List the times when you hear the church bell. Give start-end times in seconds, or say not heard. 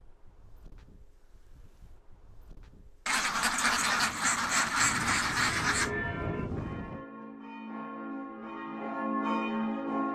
5.7-10.1.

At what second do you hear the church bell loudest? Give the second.
9 s.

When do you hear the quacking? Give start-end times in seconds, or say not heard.
3.0-5.9.